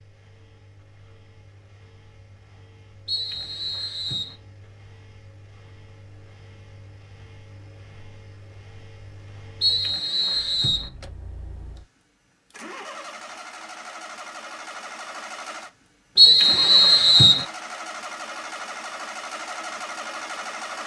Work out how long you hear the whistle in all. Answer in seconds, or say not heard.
4 s.